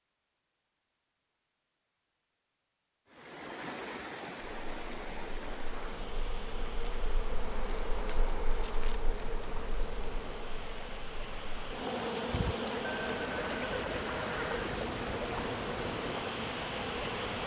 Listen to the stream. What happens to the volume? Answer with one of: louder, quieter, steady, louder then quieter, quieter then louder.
quieter then louder.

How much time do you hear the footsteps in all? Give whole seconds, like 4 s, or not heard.
not heard.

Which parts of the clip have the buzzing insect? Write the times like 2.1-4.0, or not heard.
4.4-17.4.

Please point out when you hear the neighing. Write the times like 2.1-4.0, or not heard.
12.8-14.8.